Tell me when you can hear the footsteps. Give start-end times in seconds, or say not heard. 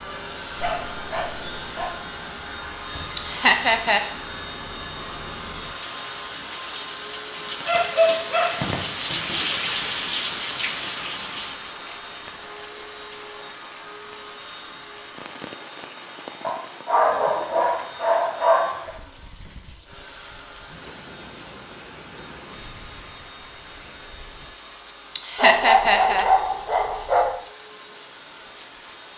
not heard.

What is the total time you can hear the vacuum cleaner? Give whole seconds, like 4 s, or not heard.
29 s.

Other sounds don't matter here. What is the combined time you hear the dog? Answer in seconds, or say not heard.
8 s.